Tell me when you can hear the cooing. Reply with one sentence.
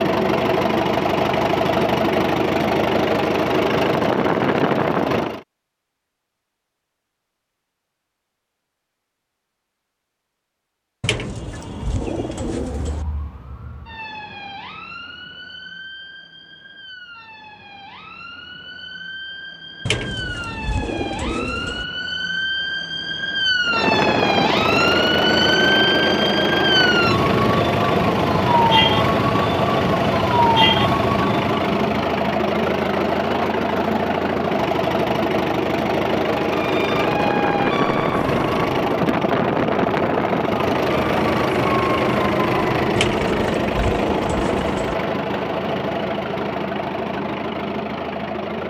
The cooing can be heard from 11.0 to 13.1 s, from 19.9 to 21.9 s and from 43.0 to 45.0 s.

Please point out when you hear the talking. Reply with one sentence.
You can't hear the talking here.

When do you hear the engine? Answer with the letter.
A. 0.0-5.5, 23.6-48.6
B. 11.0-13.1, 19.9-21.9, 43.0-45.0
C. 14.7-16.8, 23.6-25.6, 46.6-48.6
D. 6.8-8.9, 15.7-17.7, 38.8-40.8
A.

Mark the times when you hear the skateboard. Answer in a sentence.
The skateboard can't be heard in this clip.